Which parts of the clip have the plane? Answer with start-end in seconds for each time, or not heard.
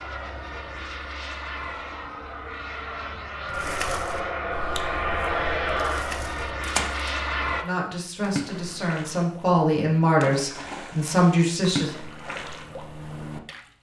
0.0-7.7.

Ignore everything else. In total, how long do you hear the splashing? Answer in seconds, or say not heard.
9 s.